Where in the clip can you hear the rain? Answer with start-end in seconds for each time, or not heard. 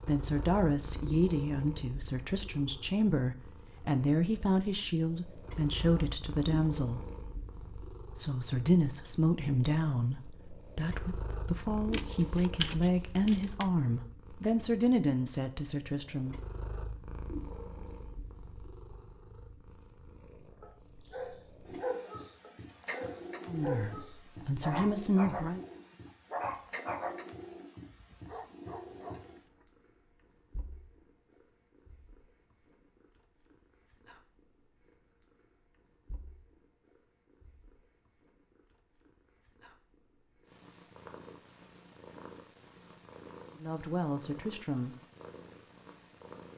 not heard.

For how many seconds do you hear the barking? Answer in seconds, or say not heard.
9 s.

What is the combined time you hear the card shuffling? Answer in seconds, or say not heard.
2 s.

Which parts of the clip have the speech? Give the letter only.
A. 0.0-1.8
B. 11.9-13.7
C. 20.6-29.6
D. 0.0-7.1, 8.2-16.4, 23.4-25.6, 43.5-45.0
D.